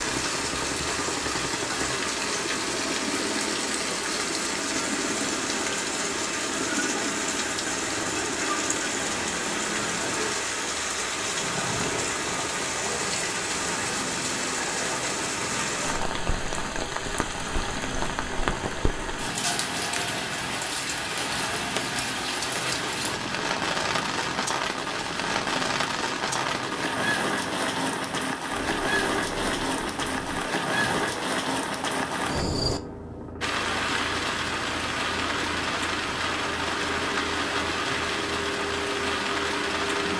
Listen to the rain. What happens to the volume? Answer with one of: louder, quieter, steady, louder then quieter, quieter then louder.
steady.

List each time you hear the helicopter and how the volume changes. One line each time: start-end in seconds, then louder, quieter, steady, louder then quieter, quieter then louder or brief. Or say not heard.
0.0-40.1 steady.